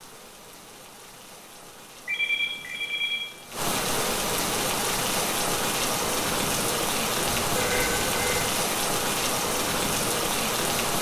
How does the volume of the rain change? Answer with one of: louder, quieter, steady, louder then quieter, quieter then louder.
louder.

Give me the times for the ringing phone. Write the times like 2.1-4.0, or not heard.
2.0-3.2, 7.4-8.5.